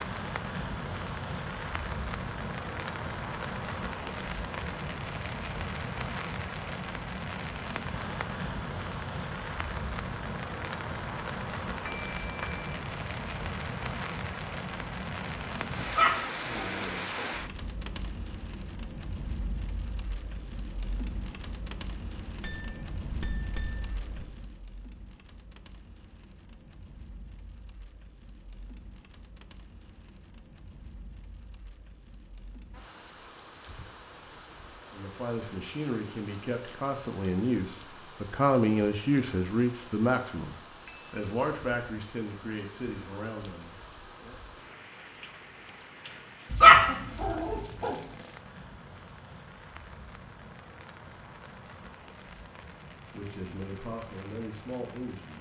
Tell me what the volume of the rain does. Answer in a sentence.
The volume of the rain goes down.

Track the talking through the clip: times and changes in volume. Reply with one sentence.
You can hear the talking from 34.9 to 44.4 s, getting louder then quieter; and briefly from 53.1 to 55.3 s.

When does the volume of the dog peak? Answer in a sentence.
The loudest moment of the dog is at 47 seconds.